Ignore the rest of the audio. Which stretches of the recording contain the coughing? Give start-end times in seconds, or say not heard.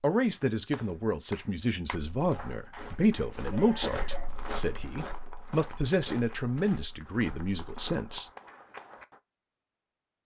not heard.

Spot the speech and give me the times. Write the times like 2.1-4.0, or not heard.
0.0-8.3.